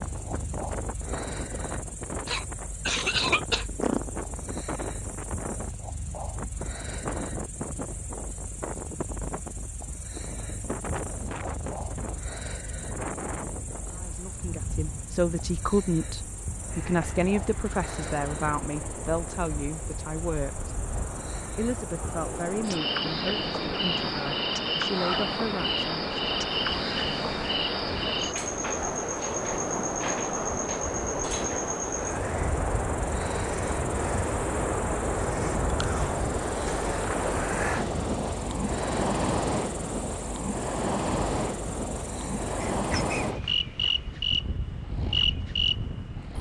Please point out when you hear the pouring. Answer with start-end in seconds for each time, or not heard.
not heard.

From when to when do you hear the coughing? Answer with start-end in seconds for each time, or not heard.
2.2-4.1, 42.8-43.4.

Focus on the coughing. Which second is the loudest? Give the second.
3 s.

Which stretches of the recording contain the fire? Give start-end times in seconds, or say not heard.
not heard.